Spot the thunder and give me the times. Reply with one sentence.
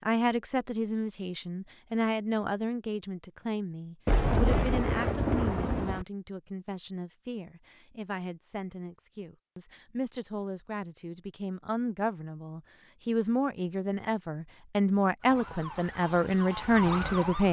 You can hear the thunder from 4.0 to 6.0 s.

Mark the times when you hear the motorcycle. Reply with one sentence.
You can't hear the motorcycle here.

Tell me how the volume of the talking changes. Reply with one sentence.
The loudness of the talking goes down, then up.